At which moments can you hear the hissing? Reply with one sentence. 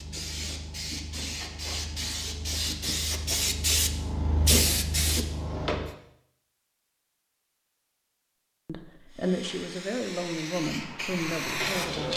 You can hear the hissing from 0.0 to 6.0 s and from 9.1 to 12.1 s.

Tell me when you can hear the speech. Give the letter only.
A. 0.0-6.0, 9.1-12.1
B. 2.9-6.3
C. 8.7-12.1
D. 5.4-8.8
C.